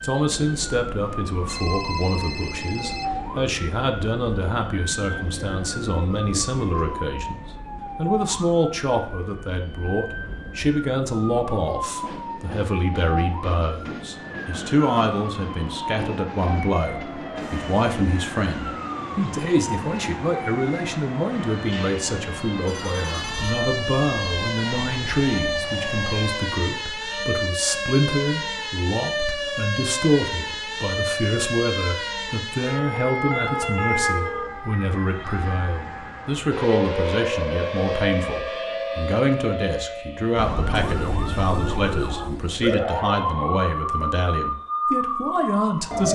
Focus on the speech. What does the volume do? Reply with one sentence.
The loudness of the speech stays about the same.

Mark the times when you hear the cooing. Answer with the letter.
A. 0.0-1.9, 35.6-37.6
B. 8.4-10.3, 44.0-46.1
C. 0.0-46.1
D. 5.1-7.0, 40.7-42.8
D.